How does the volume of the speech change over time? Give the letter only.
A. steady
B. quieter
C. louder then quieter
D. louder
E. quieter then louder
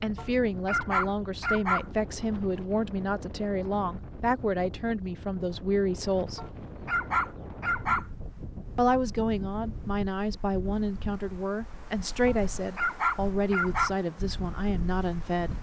A.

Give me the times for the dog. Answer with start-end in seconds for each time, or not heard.
0.1-1.9, 6.3-8.1, 12.2-13.9.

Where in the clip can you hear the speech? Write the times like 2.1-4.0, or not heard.
0.0-6.5, 8.8-15.5.